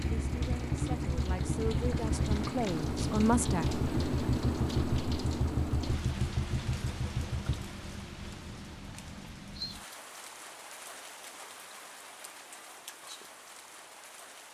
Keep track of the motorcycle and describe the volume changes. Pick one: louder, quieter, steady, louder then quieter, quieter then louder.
steady.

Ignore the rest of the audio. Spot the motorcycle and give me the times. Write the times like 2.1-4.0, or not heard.
0.0-7.7.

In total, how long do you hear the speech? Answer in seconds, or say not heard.
4 s.